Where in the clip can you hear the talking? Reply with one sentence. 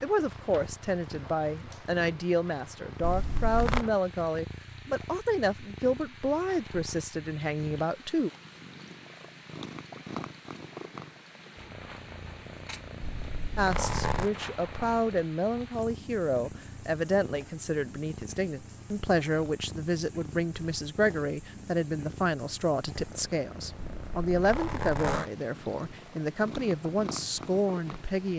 You can hear the talking from 0.0 to 8.3 s and from 13.6 to 28.3 s.